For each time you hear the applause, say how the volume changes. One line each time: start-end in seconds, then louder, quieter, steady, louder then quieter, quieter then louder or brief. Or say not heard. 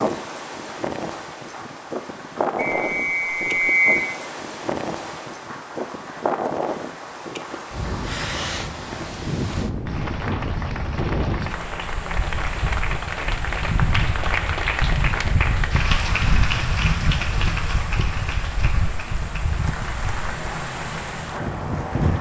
0.2-22.1 louder then quieter.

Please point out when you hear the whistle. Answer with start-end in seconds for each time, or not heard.
2.5-4.0.